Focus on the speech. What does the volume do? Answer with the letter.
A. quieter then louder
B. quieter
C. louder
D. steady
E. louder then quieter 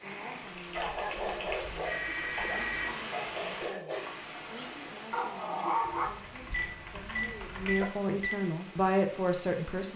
C.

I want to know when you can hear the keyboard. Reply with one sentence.
You can hear the keyboard from 0.6 to 2.5 s and from 6.0 to 7.8 s.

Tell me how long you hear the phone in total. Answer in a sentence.
You can hear the phone for 3 seconds altogether.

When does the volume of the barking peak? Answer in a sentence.
The volume of the barking peaks at 6 seconds.